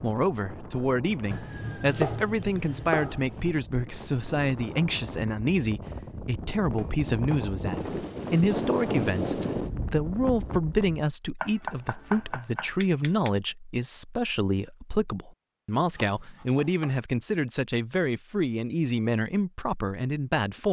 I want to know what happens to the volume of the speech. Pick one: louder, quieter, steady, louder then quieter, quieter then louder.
steady.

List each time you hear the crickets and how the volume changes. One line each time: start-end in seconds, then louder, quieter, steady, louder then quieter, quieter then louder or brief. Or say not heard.
not heard.